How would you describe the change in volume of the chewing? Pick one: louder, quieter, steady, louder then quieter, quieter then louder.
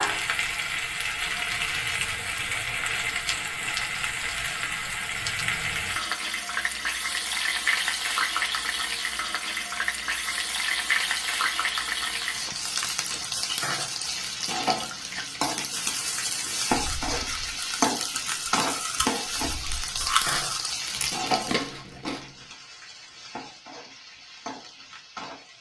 louder.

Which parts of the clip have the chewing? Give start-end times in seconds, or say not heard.
12.1-22.3.